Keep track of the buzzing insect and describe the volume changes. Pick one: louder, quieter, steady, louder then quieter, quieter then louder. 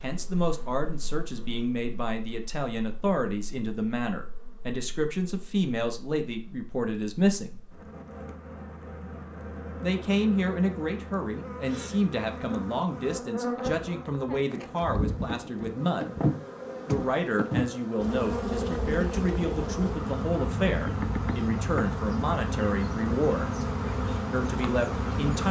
louder.